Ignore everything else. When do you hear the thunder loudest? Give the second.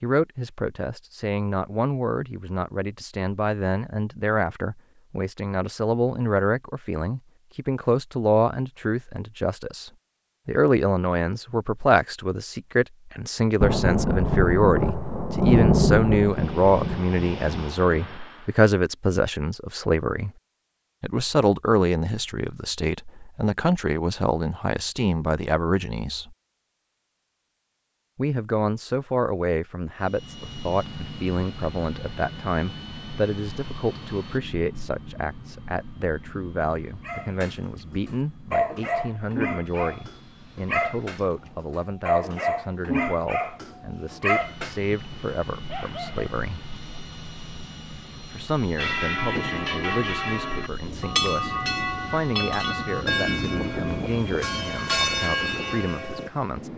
16 s.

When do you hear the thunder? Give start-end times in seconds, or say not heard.
13.6-18.3, 50.9-54.7.